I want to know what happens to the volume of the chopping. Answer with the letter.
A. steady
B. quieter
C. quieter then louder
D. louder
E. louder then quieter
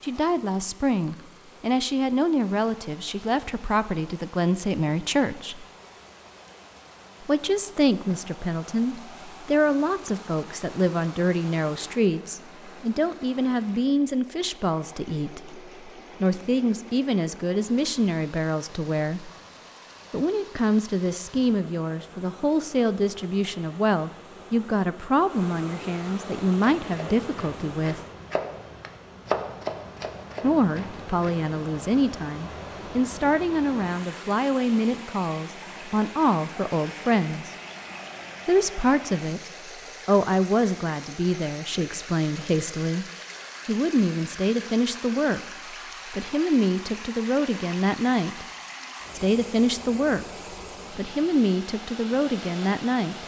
E.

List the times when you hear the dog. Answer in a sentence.
You can't hear the dog here.